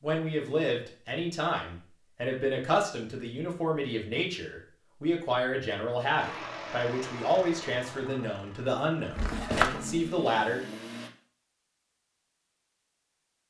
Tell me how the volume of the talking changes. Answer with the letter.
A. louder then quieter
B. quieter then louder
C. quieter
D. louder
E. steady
E.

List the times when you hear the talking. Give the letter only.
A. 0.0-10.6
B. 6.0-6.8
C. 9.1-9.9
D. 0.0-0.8
A.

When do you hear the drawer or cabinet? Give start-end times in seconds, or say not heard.
9.1-9.9.